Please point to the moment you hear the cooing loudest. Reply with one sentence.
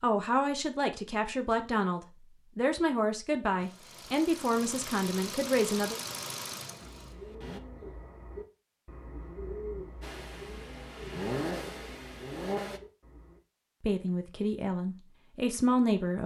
The volume of the cooing peaks at 10 seconds.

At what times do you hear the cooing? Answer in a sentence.
The cooing can be heard from 6.8 to 13.4 s.